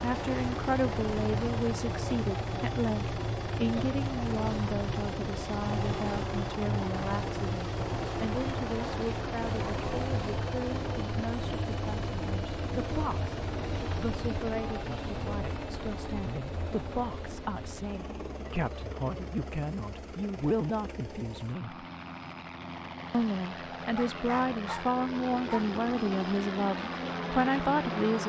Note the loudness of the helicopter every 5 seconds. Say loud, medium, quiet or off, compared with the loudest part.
loud, loud, loud, medium, medium, loud.